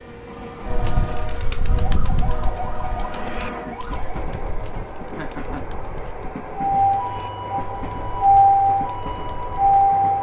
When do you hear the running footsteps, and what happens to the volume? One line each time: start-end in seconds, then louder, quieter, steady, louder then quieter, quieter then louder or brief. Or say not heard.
not heard.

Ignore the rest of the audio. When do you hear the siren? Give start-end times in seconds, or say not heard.
0.0-4.2, 6.5-10.1.